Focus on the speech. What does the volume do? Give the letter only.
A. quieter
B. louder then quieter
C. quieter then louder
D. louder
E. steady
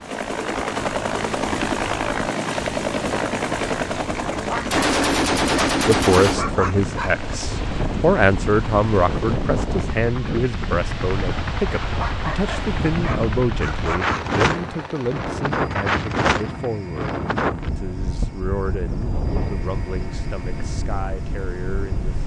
A.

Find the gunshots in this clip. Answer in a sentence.
You can hear the gunshots from 4.7 to 6.4 s.